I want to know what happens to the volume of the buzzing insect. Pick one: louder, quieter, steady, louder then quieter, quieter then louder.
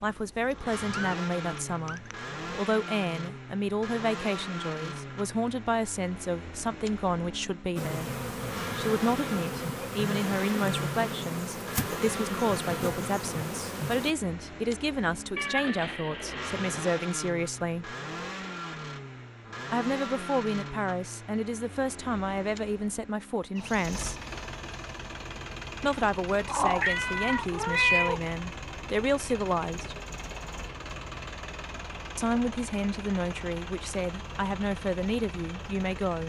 steady.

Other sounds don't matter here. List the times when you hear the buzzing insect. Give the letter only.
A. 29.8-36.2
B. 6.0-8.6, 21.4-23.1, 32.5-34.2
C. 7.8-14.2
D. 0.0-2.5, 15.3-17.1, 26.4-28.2
C.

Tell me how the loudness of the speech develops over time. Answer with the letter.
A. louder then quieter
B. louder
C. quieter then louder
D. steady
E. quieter
D.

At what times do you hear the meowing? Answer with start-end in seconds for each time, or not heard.
0.0-2.5, 15.3-17.1, 26.4-28.2.